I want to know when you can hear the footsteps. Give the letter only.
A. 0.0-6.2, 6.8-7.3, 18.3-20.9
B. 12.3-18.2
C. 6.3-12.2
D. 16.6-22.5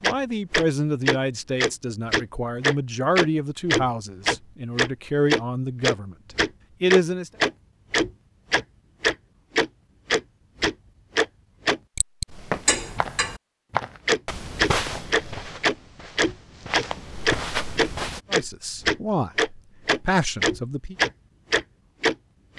B.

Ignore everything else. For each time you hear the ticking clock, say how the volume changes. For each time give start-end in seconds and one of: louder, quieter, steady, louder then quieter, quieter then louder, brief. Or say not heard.
0.0-13.4 steady
14.1-22.5 steady.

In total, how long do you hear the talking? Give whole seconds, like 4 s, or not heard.
9 s.